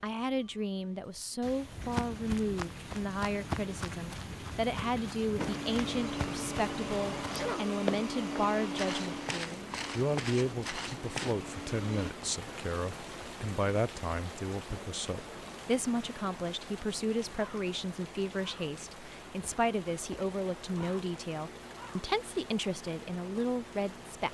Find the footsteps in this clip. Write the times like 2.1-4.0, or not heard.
1.8-11.3.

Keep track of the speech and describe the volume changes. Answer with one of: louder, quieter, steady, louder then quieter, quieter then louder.
steady.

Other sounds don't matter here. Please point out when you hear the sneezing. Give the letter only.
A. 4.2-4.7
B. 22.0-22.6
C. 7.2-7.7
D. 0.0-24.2
C.